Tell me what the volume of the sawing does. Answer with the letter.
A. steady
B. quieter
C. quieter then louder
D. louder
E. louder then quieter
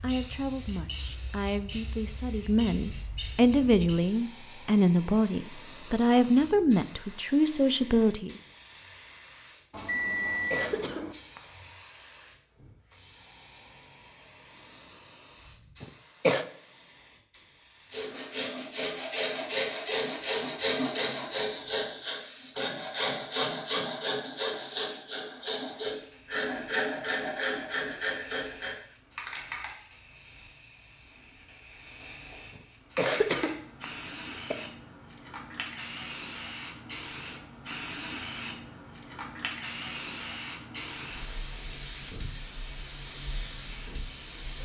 A.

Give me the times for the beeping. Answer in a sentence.
The beeping can be heard from 9.7 to 11.2 s.